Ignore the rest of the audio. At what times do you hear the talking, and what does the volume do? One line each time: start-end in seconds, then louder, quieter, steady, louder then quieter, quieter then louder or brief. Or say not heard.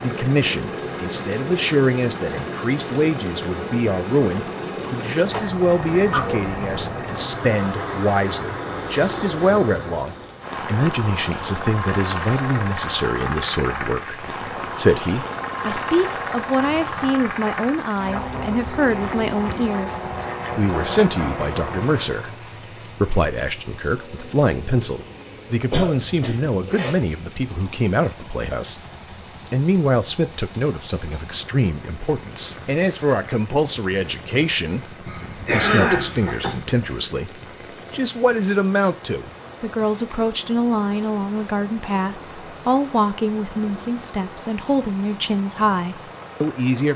0.0-28.8 steady
29.5-46.9 steady.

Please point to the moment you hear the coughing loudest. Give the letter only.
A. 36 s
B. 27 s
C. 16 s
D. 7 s
A.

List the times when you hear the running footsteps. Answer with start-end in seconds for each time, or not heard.
not heard.